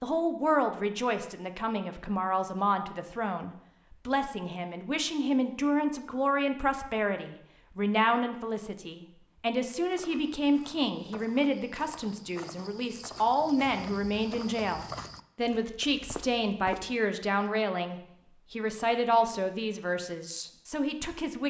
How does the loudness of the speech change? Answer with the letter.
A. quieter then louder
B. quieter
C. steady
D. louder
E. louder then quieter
C.